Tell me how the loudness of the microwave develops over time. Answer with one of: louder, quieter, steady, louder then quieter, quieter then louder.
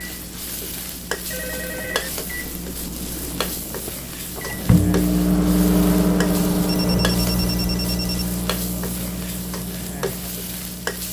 louder then quieter.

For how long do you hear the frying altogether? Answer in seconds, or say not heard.
11 s.